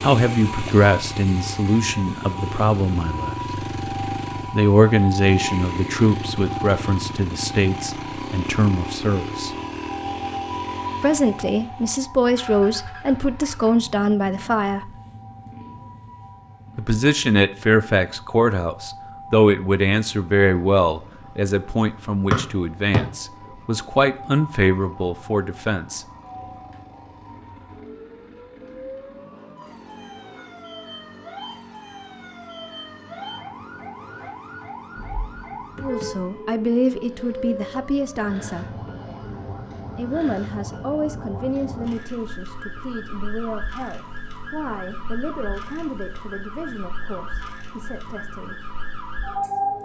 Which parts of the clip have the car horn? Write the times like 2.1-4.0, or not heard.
35.0-36.2.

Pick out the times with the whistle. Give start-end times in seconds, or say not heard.
22.3-23.0.